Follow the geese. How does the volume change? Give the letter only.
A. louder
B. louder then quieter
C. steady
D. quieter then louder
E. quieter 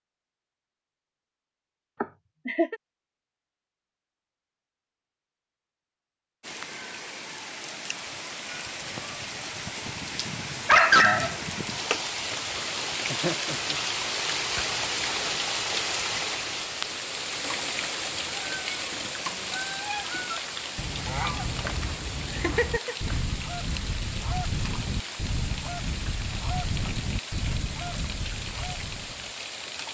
C.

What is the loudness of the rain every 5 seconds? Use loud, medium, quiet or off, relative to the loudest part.
off, medium, loud, loud, medium, medium.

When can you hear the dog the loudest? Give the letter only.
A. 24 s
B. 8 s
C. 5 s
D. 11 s
D.